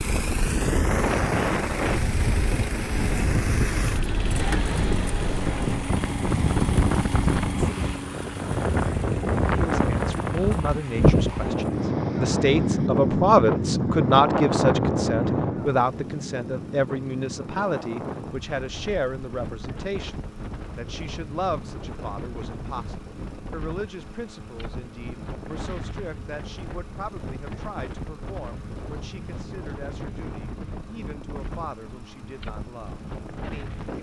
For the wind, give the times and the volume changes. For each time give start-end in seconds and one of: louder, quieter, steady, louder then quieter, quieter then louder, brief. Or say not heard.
0.0-33.9 quieter.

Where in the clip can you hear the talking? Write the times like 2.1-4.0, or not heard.
9.4-33.9.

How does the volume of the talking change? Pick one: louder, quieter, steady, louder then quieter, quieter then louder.
quieter.